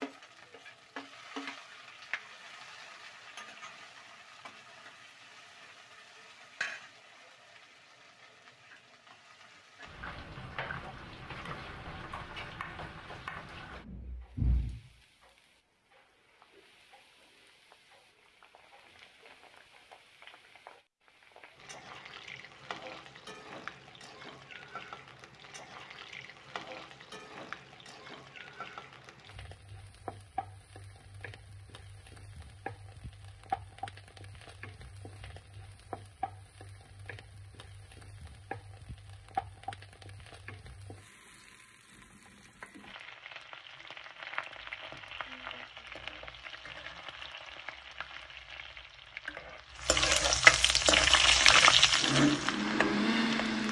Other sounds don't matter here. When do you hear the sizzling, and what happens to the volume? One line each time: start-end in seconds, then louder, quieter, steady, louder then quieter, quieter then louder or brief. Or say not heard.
0.0-53.6 louder.